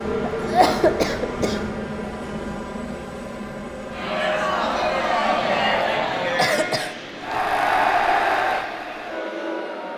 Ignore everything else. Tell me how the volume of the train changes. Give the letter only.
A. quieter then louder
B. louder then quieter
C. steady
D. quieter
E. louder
D.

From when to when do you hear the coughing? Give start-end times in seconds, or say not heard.
0.2-1.8, 5.4-7.5.